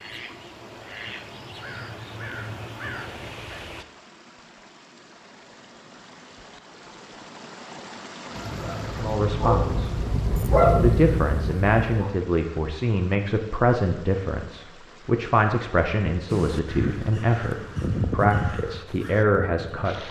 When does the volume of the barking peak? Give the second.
11 s.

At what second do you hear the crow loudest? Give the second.
18 s.